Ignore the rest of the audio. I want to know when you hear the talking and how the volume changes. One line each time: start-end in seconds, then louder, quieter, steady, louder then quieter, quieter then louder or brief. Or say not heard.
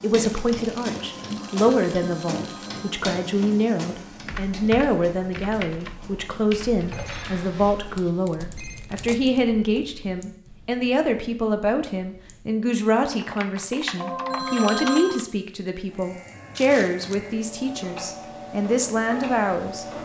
0.0-19.9 steady.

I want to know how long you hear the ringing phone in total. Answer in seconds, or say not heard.
5 s.